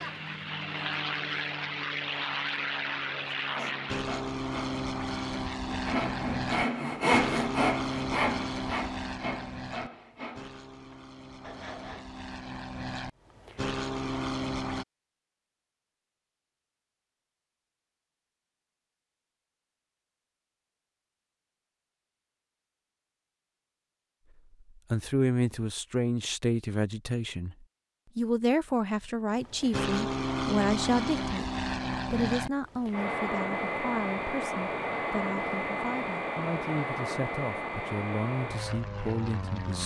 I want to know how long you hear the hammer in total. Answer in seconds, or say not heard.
not heard.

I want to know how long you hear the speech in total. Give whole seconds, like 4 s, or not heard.
15 s.